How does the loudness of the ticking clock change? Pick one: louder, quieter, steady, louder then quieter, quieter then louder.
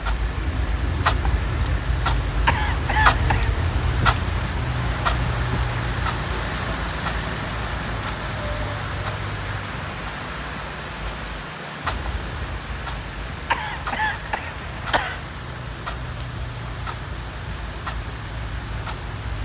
quieter.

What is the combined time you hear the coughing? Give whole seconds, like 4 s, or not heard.
3 s.